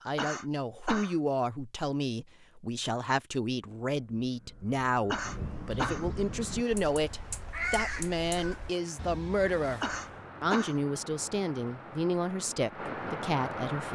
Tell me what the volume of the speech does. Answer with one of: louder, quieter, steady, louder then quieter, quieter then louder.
steady.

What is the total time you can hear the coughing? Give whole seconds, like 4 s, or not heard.
3 s.